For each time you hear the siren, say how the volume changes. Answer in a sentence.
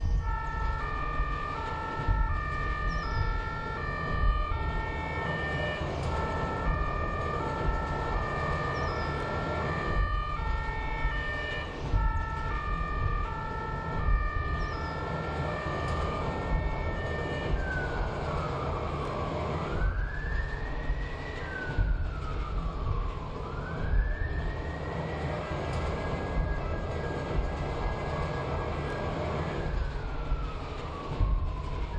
You can hear the siren from 0.0 to 31.9 s, getting quieter.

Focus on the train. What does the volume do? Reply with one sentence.
The volume of the train stays about the same.